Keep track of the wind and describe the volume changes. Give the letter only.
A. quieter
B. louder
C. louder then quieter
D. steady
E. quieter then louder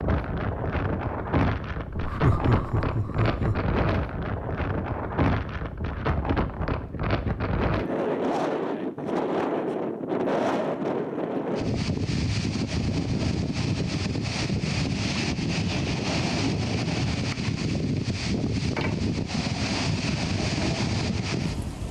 D.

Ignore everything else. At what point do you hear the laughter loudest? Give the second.
2 s.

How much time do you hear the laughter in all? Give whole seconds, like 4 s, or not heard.
2 s.